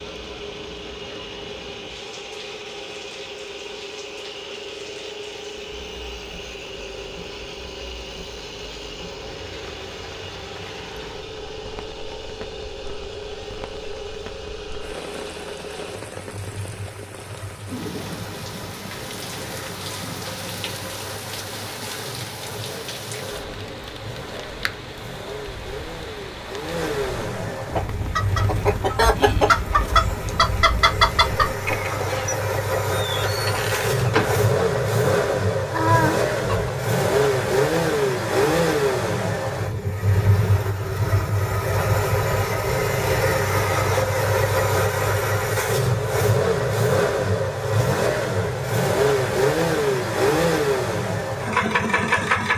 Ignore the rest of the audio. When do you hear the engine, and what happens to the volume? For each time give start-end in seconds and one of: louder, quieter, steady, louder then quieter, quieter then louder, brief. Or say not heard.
0.0-52.5 louder.